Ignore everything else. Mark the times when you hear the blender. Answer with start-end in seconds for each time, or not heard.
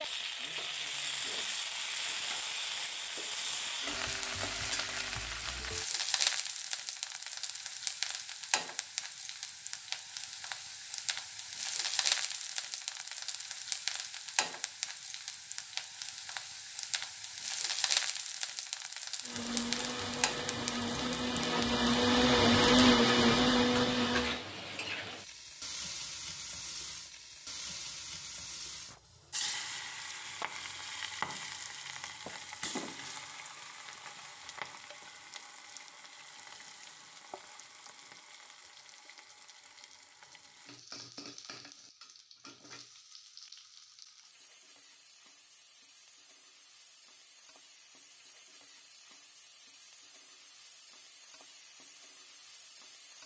19.2-24.4.